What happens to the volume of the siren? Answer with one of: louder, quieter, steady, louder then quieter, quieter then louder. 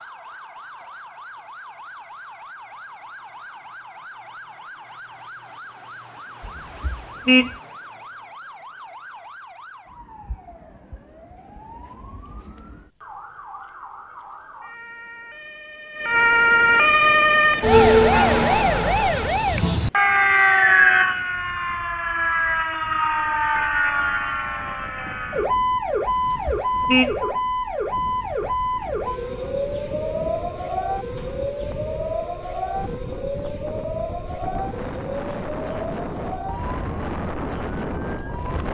louder then quieter.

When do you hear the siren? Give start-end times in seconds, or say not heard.
0.0-38.6.